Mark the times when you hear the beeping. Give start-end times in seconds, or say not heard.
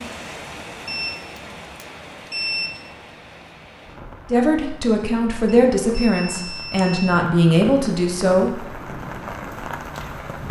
0.8-2.7, 5.5-7.2.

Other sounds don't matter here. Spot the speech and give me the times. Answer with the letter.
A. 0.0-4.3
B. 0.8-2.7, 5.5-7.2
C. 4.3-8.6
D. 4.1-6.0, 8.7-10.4
C.